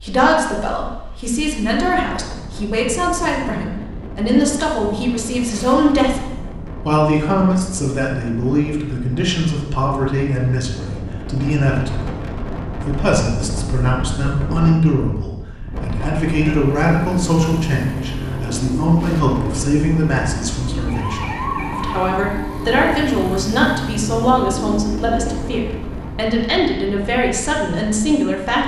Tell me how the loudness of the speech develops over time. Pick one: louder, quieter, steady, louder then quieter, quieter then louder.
steady.